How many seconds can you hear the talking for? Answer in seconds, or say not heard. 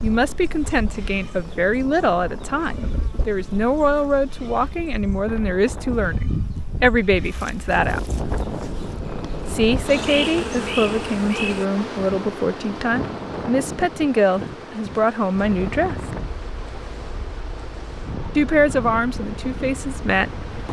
17 s.